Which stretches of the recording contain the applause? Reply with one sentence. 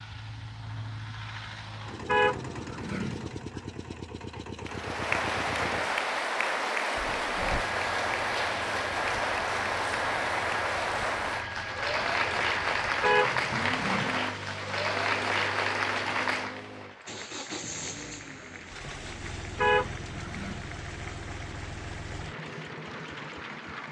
You can hear the applause from 4.7 to 23.8 s.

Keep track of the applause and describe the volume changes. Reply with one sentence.
The volume of the applause goes down.